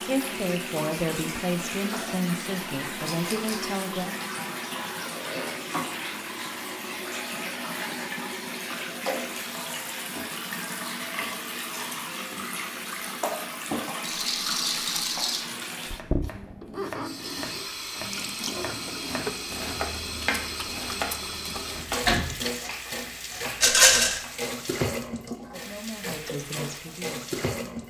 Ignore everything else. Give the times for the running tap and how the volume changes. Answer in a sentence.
The running tap can be heard from 0.0 to 27.8 s, at a steady volume.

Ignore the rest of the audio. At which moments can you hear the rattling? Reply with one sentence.
The rattling can be heard from 3.0 to 3.6 s, from 14.0 to 15.4 s and from 23.6 to 24.2 s.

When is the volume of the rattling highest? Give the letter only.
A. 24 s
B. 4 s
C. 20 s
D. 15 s
A.